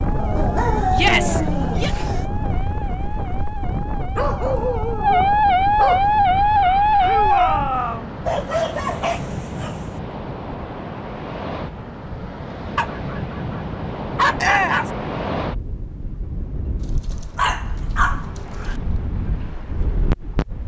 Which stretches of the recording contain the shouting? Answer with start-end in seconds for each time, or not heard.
0.9-1.9, 7.0-8.1, 14.3-14.9.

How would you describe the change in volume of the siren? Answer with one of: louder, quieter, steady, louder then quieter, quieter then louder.
louder.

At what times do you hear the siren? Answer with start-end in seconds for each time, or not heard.
0.0-7.7.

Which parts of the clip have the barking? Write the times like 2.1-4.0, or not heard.
0.1-2.2, 4.2-6.1, 8.2-9.8, 12.8-14.8, 16.8-18.8.